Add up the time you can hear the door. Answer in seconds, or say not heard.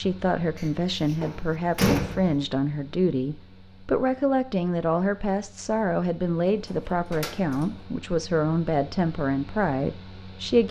3 s.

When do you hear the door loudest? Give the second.
2 s.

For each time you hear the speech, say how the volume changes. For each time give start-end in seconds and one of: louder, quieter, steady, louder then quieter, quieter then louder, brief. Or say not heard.
0.0-10.6 steady.